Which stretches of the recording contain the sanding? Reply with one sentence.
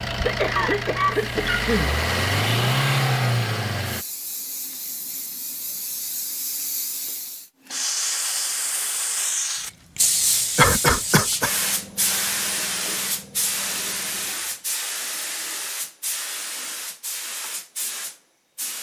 The sanding can't be heard in this clip.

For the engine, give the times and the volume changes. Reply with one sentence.
You can hear the engine from 0.0 to 4.0 s, getting louder.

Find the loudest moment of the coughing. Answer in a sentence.
The volume of the coughing peaks at 11 seconds.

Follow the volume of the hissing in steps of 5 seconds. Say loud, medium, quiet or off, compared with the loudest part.
medium, loud, loud, medium.